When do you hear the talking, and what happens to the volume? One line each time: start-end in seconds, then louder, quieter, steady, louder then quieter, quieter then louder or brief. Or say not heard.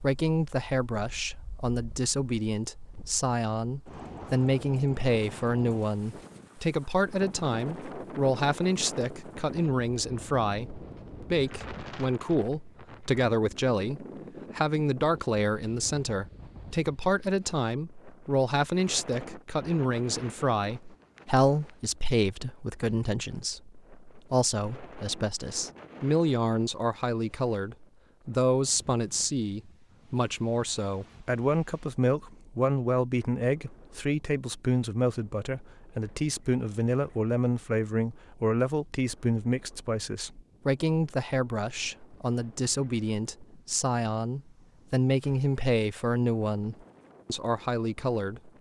0.0-48.5 steady.